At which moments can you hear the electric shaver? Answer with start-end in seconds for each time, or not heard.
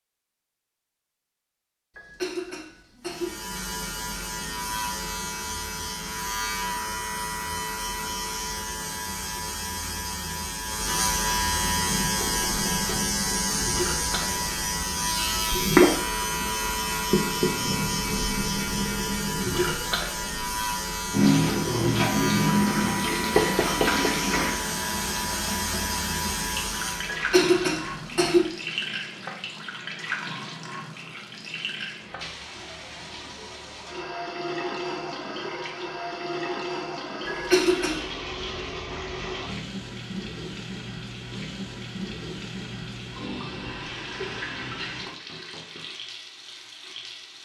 3.0-27.2.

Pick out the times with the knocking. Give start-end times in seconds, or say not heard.
12.2-13.1, 23.4-24.1, 45.0-45.9.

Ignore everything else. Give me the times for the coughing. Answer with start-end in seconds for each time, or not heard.
1.9-3.4, 27.1-28.5, 37.2-38.0.